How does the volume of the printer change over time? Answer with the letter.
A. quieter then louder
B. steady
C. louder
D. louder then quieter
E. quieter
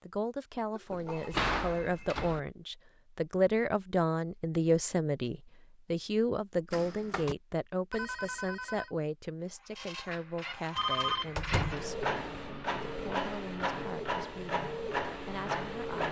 C.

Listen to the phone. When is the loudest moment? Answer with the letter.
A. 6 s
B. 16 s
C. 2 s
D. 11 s
D.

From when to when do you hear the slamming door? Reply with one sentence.
You can hear the slamming door from 0.9 to 2.4 s, from 6.7 to 7.3 s and from 11.3 to 11.9 s.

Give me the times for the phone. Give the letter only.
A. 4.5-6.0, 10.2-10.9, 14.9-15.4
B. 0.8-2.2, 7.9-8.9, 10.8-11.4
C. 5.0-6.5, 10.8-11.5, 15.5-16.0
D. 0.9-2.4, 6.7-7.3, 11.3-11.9
B.